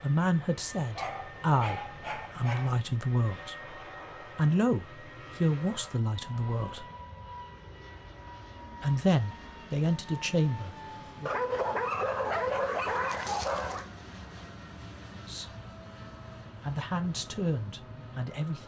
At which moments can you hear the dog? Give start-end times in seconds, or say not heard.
0.9-2.8, 11.2-13.8.